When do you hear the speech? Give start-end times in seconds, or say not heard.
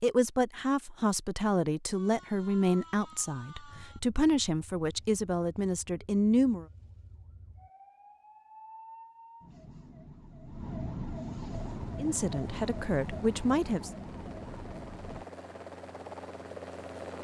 0.0-6.7, 12.0-13.9.